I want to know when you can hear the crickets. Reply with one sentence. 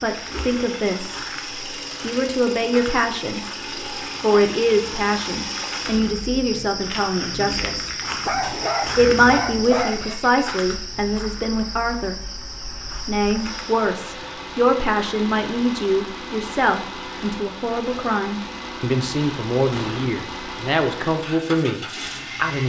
The crickets can be heard from 0.0 to 13.9 s.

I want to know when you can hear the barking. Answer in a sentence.
The barking can be heard from 8.2 to 10.2 s.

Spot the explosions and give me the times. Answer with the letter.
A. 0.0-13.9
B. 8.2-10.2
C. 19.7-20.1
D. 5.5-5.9
C.